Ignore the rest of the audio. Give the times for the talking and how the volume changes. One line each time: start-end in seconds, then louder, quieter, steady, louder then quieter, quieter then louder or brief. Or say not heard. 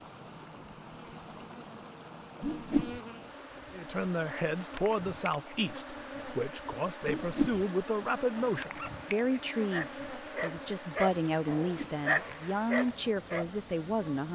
3.7-14.3 steady.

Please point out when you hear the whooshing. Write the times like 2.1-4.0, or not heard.
2.4-3.0, 7.0-7.7, 11.7-12.1.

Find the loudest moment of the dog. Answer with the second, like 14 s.
12 s.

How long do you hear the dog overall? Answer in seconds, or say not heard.
5 s.